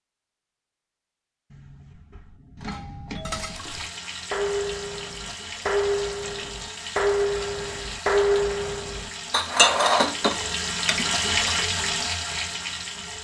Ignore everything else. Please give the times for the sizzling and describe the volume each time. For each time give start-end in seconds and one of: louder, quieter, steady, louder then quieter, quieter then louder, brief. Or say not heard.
3.3-13.1 louder.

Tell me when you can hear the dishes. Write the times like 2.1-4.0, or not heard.
2.6-11.6.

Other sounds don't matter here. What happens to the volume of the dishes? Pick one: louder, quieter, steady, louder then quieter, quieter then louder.
louder.